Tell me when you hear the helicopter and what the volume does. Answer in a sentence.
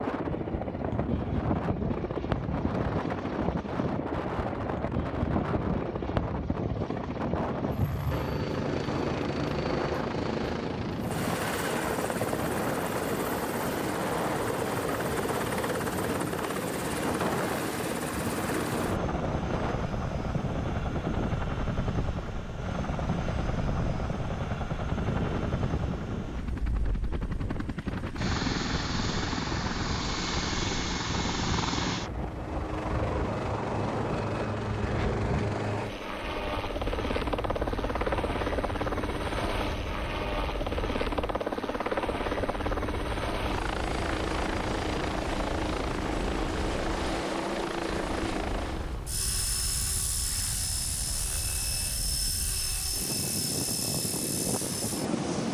The helicopter can be heard from 0.0 to 55.4 s, at a steady volume.